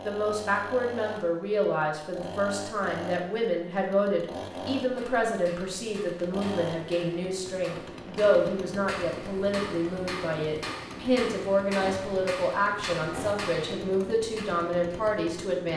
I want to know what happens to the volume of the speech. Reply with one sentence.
The loudness of the speech stays about the same.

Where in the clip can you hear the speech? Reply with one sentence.
The speech can be heard from 0.0 to 15.7 s.